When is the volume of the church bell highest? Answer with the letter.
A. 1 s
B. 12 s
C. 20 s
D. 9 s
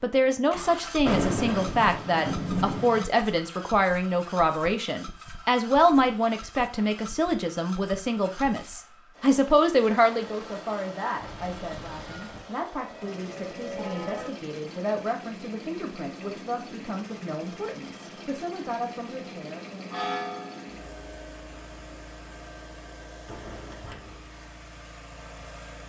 C.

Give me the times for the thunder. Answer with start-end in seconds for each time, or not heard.
1.1-3.0, 23.2-24.2.